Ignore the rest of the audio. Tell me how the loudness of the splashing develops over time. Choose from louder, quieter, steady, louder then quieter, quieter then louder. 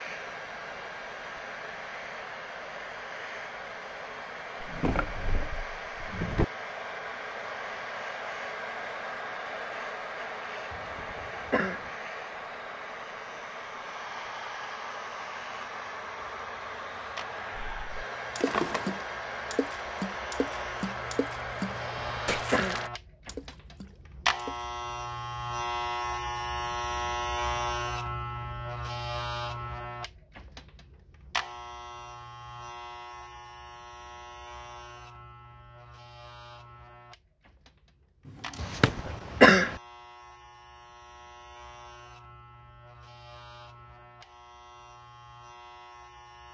quieter.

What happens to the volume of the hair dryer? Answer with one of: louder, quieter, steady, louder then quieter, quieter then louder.
steady.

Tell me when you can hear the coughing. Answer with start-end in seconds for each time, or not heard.
10.7-11.9, 21.8-22.9, 38.6-39.8.